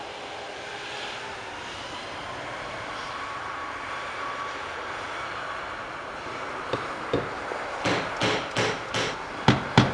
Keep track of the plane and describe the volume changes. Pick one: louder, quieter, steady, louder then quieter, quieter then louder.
steady.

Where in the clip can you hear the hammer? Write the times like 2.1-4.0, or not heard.
6.2-9.9.